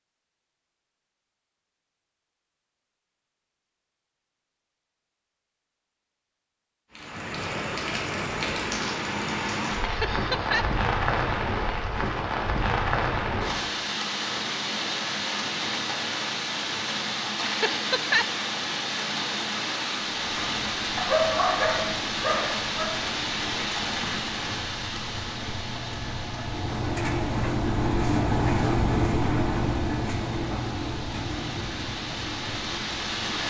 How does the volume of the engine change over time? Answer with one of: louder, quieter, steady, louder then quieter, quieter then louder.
louder then quieter.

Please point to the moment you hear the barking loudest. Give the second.
21 s.